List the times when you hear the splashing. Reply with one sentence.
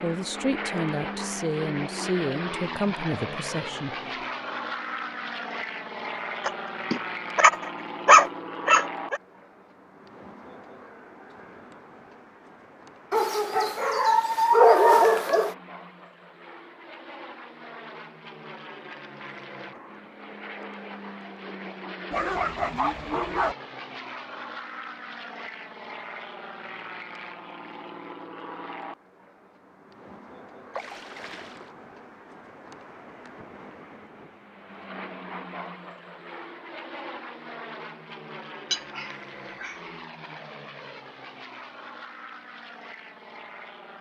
The splashing can be heard from 30.7 to 31.8 s.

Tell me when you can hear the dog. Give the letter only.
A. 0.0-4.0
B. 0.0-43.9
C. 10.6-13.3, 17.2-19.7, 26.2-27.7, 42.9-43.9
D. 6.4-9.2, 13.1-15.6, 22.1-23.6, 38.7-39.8
D.